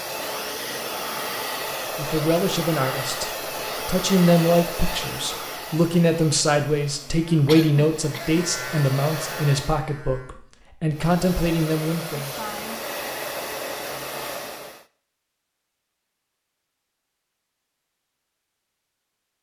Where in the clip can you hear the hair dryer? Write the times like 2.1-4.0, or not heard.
0.0-9.8, 10.9-14.8.